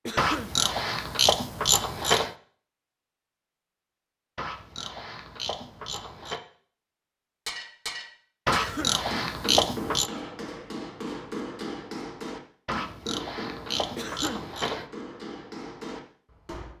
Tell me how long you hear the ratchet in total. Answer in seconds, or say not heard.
8 s.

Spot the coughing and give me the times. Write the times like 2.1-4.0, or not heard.
0.1-0.6, 8.5-9.1, 13.9-14.5.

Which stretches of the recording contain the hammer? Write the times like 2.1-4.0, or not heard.
7.5-16.7.